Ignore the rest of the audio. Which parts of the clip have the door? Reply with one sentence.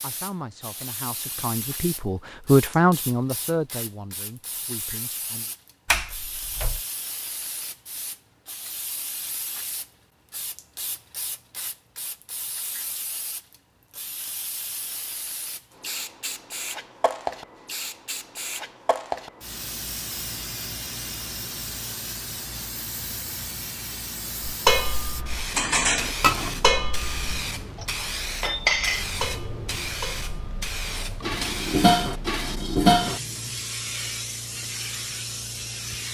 You can hear the door from 5.8 to 6.8 s.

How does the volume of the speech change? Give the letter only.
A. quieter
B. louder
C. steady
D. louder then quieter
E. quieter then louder
D.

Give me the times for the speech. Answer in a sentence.
You can hear the speech from 0.0 to 5.5 s.